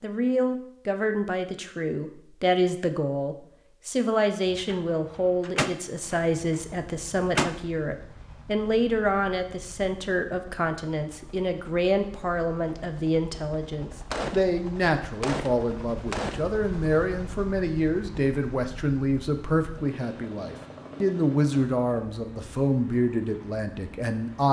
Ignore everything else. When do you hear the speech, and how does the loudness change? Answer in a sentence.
You can hear the speech from 0.0 to 24.4 s, at a steady volume.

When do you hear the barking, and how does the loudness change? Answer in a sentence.
The barking can't be heard in this clip.